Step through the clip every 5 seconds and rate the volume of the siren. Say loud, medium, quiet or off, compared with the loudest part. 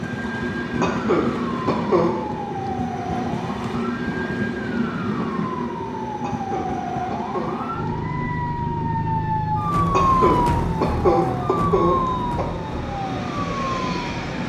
medium, loud, loud.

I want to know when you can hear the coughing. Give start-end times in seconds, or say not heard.
0.8-2.1, 6.2-7.5, 9.9-12.4.